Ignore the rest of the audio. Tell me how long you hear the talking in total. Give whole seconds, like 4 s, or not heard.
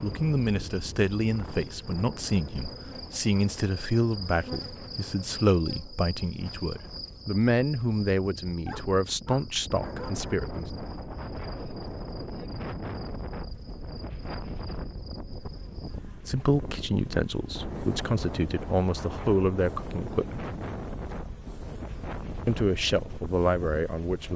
17 s.